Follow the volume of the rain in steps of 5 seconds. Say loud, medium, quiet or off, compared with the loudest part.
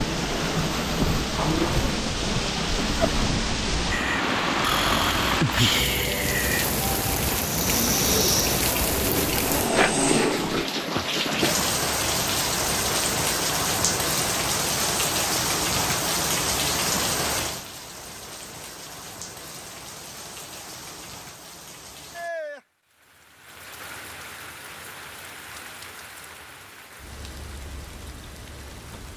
loud, loud, loud, loud, quiet, quiet.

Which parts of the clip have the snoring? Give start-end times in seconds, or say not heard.
3.9-10.7.